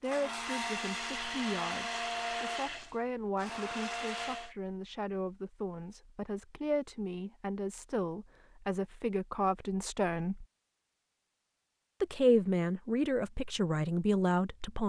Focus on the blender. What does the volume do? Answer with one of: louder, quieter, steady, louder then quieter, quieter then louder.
quieter then louder.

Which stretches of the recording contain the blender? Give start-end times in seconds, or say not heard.
0.0-4.5.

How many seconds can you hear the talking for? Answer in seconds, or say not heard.
13 s.